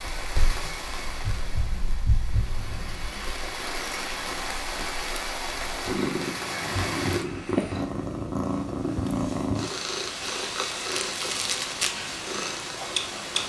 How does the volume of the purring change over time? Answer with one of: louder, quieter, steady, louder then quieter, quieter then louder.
quieter then louder.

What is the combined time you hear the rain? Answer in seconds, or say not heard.
7 s.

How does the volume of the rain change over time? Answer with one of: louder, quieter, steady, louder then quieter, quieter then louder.
quieter then louder.